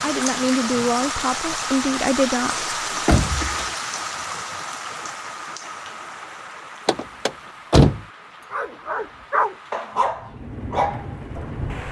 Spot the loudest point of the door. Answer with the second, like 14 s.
8 s.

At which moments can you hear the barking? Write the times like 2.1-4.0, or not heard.
8.5-11.8.